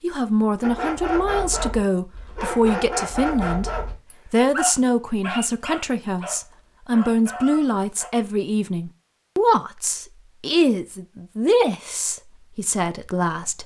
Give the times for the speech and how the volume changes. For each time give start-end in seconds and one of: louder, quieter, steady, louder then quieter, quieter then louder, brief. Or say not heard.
0.0-13.6 steady.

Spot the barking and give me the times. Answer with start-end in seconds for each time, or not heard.
0.6-8.1.